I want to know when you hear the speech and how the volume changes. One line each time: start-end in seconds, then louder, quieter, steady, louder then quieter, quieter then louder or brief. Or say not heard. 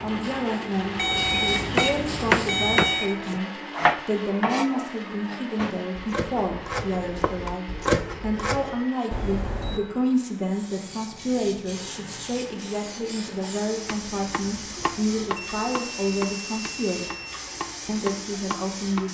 0.0-17.1 steady
17.9-19.1 brief.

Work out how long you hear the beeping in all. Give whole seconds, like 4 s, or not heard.
5 s.